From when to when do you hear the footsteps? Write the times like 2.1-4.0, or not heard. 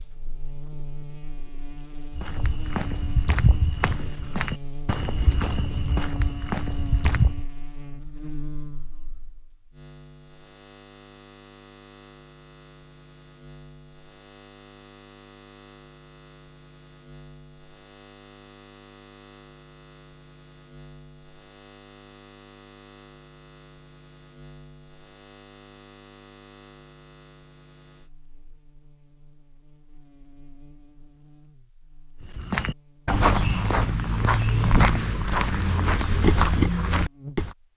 2.1-7.5, 32.4-37.5.